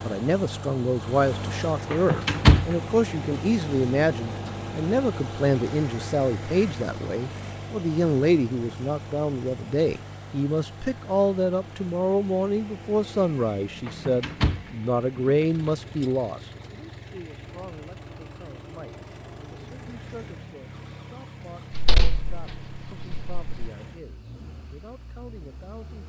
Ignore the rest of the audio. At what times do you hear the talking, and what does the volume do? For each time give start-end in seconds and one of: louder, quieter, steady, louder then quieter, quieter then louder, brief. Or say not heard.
0.0-26.0 quieter.